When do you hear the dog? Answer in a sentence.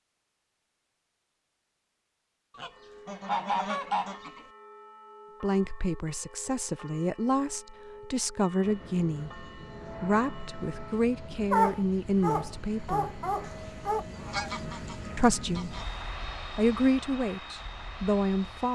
The dog can be heard from 11.5 to 14.1 s.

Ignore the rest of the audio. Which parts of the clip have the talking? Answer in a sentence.
The talking can be heard from 5.4 to 13.2 s, from 15.2 to 15.8 s and from 16.6 to 18.7 s.